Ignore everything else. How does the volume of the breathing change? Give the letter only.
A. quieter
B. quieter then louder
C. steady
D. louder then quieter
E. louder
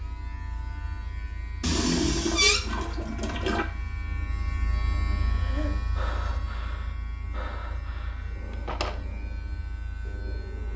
A.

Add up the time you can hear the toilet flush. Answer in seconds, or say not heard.
2 s.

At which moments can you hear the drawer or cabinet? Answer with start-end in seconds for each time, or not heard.
8.3-9.0.